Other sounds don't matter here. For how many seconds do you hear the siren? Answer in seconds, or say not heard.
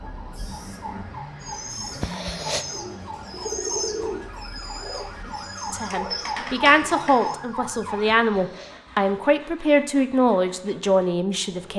8 s.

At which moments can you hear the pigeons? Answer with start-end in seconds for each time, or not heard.
1.4-7.3.